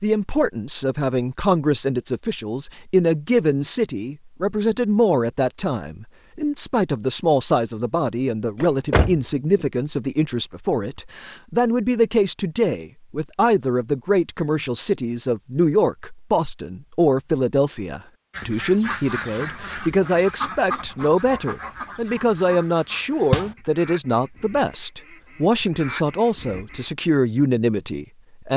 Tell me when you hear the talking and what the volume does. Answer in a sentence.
You can hear the talking from 0.0 to 28.5 s, at a steady volume.